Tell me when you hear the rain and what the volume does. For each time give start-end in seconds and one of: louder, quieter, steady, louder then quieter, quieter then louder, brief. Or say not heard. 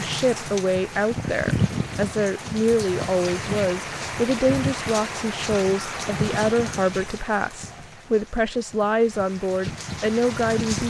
0.0-10.8 quieter.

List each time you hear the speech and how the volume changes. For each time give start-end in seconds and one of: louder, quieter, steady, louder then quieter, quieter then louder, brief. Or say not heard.
0.0-10.8 steady.